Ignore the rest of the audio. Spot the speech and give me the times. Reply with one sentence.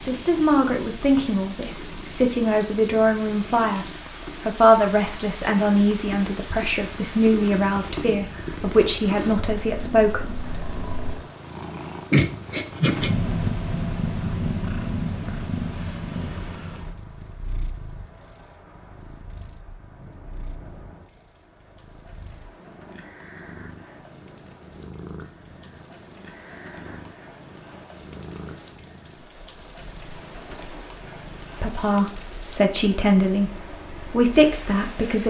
You can hear the speech from 0.0 to 10.4 s and from 31.6 to 35.2 s.